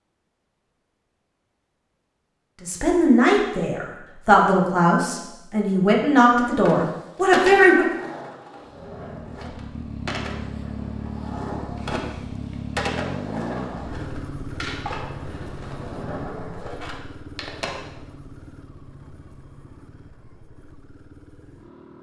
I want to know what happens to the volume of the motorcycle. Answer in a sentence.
The loudness of the motorcycle goes down.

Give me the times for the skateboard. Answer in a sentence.
You can hear the skateboard from 6.5 to 18.0 s.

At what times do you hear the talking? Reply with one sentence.
The talking can be heard from 2.6 to 8.0 s.